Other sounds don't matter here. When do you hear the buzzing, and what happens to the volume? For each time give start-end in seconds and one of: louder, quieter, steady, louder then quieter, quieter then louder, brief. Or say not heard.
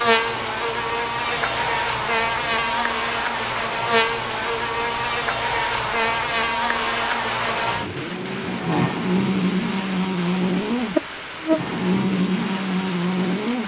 0.0-13.6 steady.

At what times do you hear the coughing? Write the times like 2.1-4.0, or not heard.
not heard.